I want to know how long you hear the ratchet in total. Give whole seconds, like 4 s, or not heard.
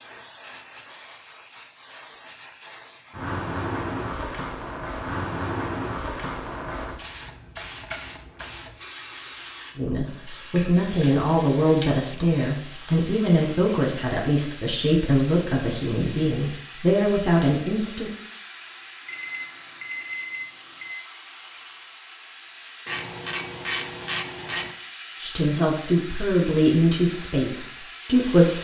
2 s.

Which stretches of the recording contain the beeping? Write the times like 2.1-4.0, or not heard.
19.1-20.9.